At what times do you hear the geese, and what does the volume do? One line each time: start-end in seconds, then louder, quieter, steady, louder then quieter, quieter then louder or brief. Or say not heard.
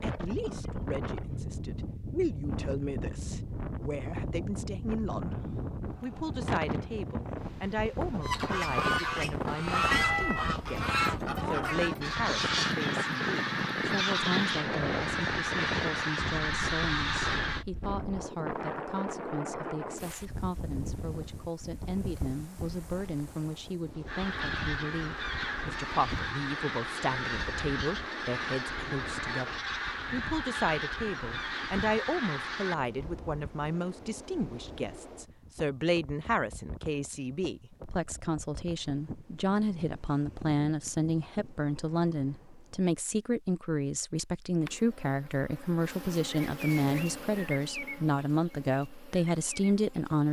8.2-17.6 steady
24.1-32.8 steady.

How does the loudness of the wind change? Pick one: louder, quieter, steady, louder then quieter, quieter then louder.
quieter.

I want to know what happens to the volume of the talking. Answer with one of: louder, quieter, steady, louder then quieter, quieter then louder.
louder.